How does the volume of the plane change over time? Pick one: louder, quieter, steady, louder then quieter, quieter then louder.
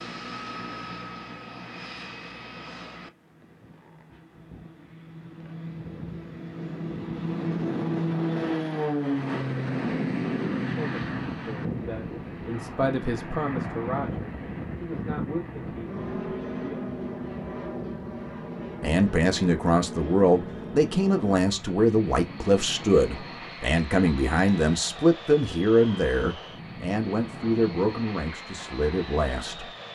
louder then quieter.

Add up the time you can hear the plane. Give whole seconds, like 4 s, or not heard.
30 s.